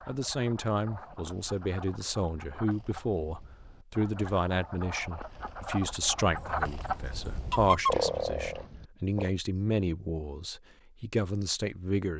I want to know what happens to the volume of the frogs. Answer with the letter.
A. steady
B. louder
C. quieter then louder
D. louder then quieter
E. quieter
B.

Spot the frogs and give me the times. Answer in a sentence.
You can hear the frogs from 0.0 to 9.3 s.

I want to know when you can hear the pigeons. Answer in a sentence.
The pigeons can be heard from 6.3 to 8.0 s.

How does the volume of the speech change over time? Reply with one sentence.
The loudness of the speech stays about the same.